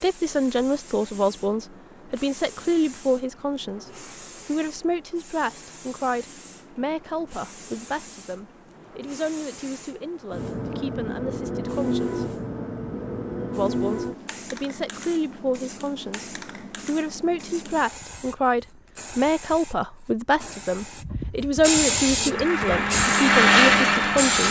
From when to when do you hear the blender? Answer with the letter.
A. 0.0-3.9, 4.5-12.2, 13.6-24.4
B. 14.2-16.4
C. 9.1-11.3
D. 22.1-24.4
D.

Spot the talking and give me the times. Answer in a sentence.
You can hear the talking from 0.0 to 3.9 s, from 4.5 to 12.2 s and from 13.6 to 24.4 s.